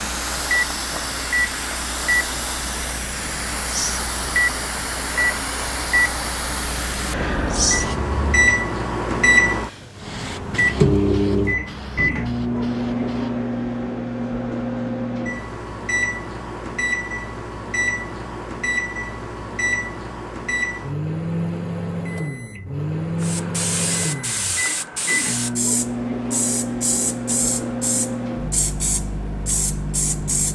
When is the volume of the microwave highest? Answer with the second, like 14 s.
9 s.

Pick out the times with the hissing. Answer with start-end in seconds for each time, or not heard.
0.0-8.6, 9.9-13.4, 23.2-30.5.